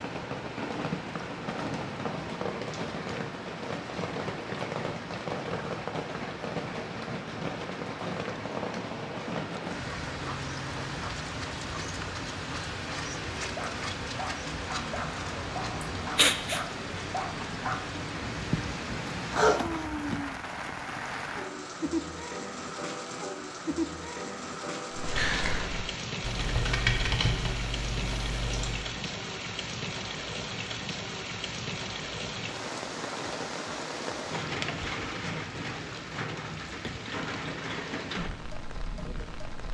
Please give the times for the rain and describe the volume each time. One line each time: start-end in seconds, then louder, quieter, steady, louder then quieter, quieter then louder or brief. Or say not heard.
0.0-39.6 steady.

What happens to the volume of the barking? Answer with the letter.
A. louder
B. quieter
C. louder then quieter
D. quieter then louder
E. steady
A.